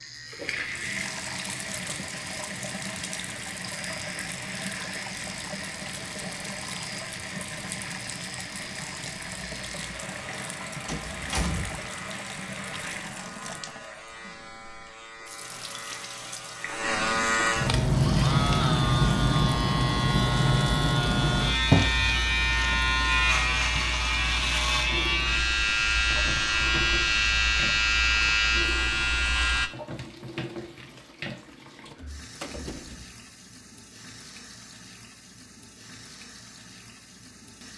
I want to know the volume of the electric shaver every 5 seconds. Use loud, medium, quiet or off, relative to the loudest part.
quiet, quiet, quiet, loud, loud, loud, off, off.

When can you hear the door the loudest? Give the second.
11 s.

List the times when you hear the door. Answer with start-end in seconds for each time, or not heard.
10.8-11.9, 31.9-33.0.